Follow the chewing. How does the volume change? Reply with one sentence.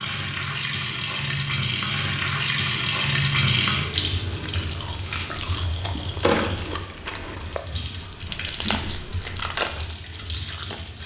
The volume of the chewing goes up.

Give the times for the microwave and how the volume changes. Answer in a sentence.
You can't hear the microwave here.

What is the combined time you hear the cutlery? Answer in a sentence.
You can't hear the cutlery here.